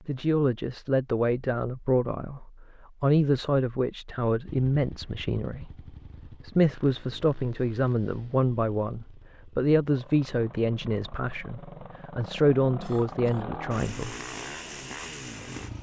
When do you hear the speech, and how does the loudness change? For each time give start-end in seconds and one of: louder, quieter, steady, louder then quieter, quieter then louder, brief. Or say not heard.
0.1-14.2 steady.